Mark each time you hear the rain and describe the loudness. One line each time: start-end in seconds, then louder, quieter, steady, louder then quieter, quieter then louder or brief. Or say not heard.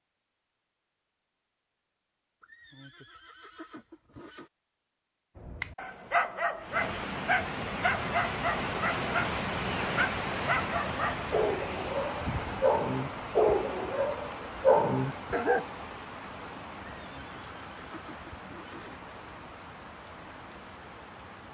6.5-21.4 quieter.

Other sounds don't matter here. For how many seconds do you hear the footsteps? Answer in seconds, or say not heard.
not heard.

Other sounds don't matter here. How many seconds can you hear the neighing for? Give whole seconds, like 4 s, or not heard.
4 s.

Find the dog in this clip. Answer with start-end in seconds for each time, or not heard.
5.3-15.7.